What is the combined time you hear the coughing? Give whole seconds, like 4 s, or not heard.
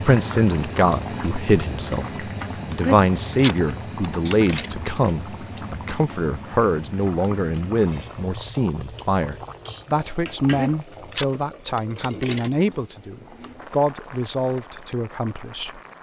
4 s.